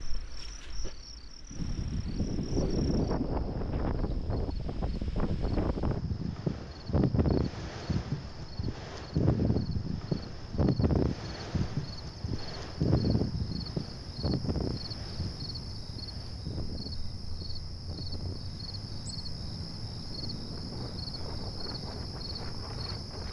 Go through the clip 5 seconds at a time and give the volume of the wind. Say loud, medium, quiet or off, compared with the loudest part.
loud, loud, loud, quiet, quiet.